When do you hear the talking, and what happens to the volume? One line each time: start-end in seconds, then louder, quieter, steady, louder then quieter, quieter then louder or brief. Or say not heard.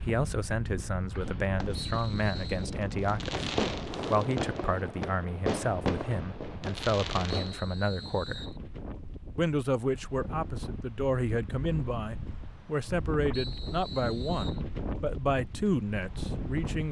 0.0-8.6 steady
9.3-16.8 steady.